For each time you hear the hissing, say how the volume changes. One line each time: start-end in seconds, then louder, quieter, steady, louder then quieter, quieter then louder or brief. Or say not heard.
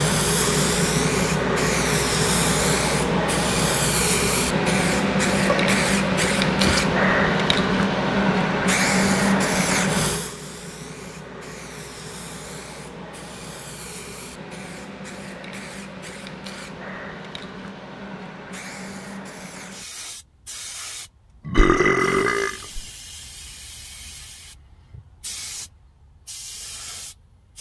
0.0-27.5 quieter.